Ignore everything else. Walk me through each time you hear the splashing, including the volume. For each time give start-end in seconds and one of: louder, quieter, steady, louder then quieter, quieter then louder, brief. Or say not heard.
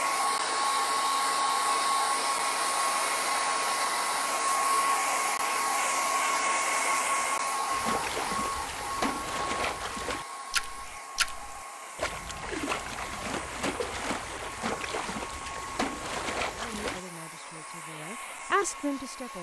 7.7-17.0 steady.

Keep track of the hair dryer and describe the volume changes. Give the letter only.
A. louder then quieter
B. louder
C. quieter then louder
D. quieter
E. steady
D.